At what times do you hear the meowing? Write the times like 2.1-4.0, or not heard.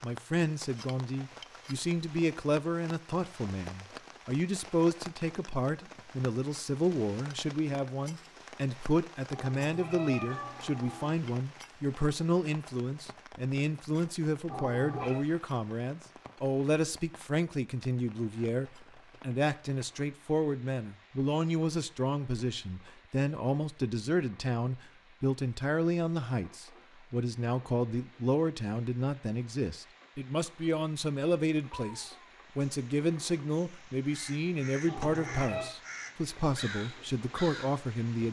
9.3-11.2, 14.4-15.2, 34.9-35.8.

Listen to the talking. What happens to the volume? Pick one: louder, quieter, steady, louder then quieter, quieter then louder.
steady.